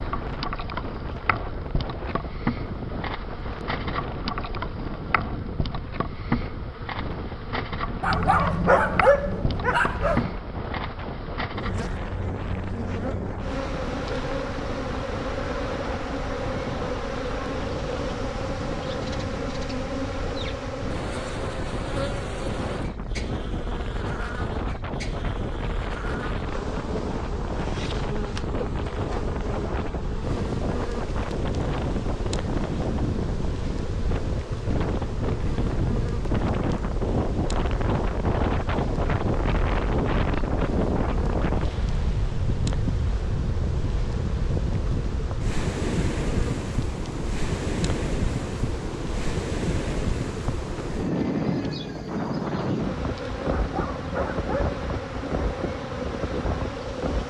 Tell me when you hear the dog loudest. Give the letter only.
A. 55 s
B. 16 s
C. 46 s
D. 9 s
D.